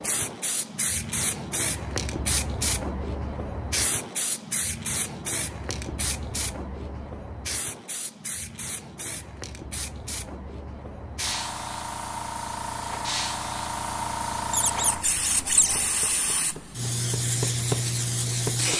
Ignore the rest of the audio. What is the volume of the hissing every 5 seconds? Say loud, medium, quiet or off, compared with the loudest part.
loud, medium, loud, loud.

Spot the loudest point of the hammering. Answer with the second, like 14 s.
18 s.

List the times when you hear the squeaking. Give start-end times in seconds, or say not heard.
14.5-15.8.